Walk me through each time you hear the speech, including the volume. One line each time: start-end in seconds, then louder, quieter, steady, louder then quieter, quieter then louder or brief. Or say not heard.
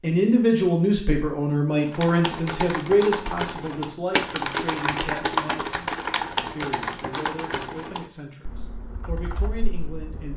0.0-10.3 quieter.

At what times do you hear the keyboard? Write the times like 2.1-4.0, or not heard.
1.9-10.3.